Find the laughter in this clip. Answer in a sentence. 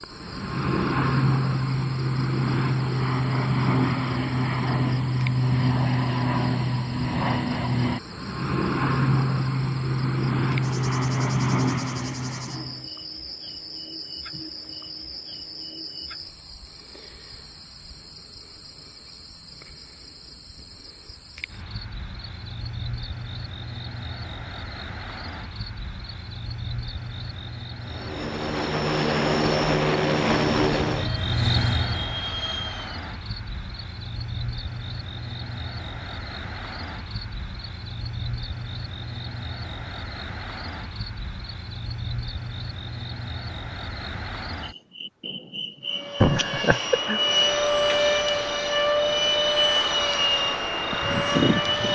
You can hear the laughter from 46.2 to 47.2 s.